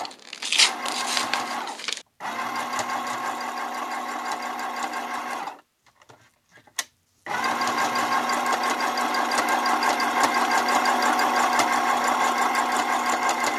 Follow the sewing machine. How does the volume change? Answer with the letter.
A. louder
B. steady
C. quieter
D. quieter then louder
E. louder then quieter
A.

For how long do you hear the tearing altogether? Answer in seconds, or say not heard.
2 s.